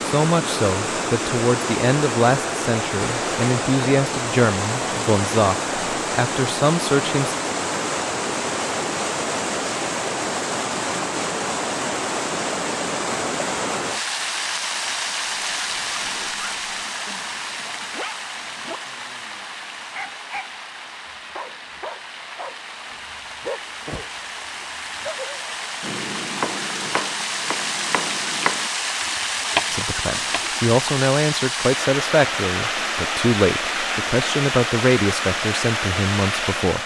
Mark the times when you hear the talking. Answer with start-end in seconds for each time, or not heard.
0.0-7.3, 29.7-36.8.